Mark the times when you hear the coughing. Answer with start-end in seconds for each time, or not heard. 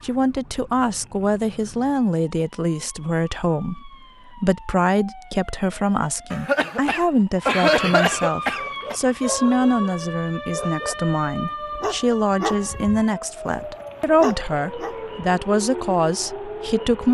6.3-8.9.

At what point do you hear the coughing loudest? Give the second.
8 s.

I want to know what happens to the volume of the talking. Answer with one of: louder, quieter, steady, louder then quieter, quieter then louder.
steady.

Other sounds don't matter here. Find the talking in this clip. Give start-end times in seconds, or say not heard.
0.0-17.0.